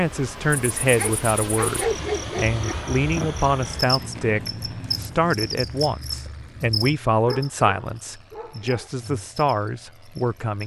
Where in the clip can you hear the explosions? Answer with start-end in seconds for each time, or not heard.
not heard.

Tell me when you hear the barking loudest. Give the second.
2 s.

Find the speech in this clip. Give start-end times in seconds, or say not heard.
0.0-10.6.